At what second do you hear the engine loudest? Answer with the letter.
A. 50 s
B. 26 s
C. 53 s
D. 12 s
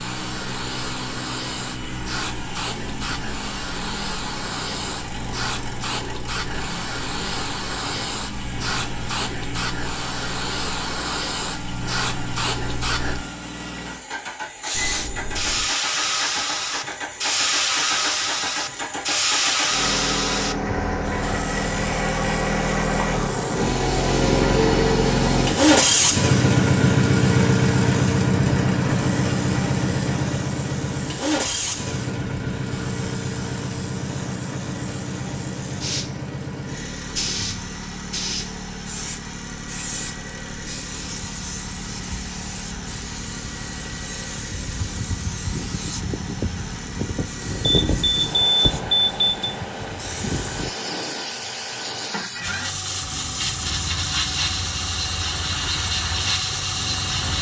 B.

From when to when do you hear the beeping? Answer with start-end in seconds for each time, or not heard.
14.8-15.7, 47.6-49.5.